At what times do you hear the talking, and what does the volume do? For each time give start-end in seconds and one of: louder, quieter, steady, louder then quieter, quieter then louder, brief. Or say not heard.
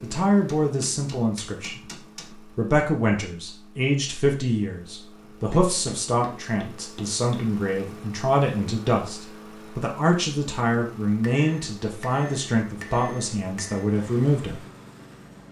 0.0-14.6 steady.